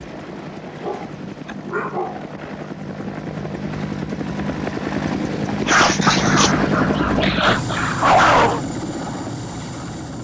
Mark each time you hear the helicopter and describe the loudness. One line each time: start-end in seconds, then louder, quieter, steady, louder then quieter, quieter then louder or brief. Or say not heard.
0.0-10.1 louder then quieter.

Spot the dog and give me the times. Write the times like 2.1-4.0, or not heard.
0.7-2.2, 5.7-8.6.